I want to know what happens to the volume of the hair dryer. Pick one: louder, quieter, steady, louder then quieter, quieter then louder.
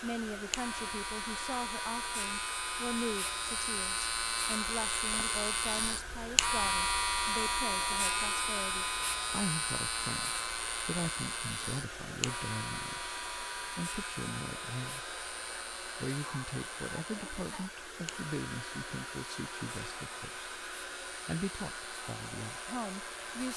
steady.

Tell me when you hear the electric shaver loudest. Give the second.
7 s.